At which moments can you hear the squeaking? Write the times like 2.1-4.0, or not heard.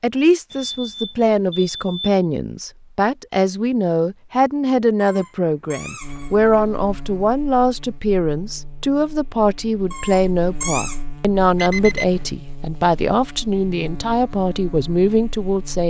5.0-6.3, 9.9-11.0.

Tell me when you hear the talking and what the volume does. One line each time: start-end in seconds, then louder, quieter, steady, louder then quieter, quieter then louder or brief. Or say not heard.
0.0-15.8 steady.